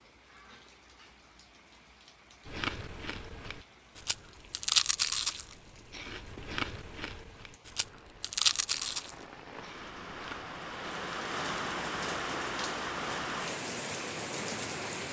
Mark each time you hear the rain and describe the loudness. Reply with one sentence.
The rain can be heard from 0.0 to 15.0 s, getting louder.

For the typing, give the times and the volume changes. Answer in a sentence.
You can't hear the typing here.